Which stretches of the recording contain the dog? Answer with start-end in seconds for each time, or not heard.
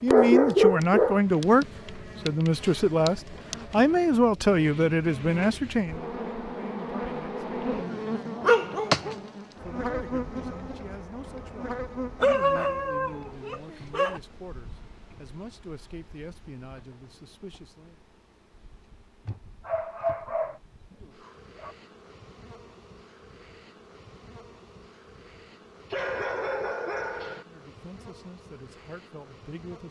0.1-1.2, 8.4-9.2, 12.2-14.2, 19.6-21.8, 25.9-27.4.